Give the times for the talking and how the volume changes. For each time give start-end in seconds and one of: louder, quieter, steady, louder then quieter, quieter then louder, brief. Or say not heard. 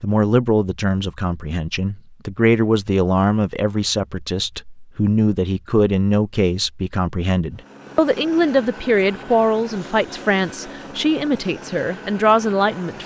0.0-13.0 steady.